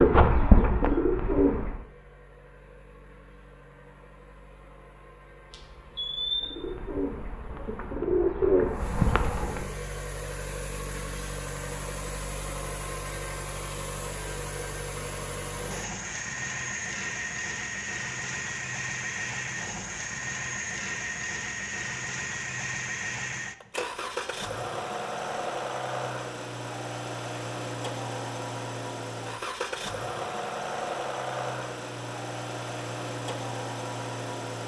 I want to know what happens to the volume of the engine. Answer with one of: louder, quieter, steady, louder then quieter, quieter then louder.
louder.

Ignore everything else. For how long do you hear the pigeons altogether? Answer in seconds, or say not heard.
5 s.